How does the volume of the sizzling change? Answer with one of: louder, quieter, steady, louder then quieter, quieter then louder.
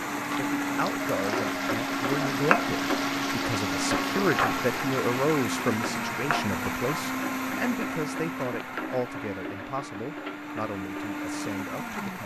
quieter.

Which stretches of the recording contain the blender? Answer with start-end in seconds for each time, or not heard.
0.0-12.2.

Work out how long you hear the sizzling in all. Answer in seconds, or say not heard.
12 s.